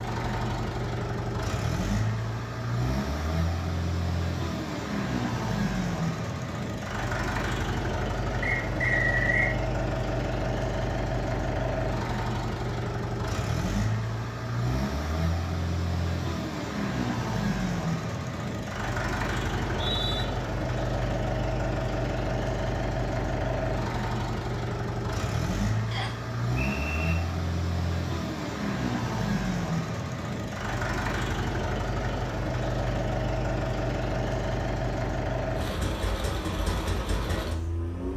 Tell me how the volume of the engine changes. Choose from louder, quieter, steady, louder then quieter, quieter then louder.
steady.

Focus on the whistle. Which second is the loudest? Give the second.
9 s.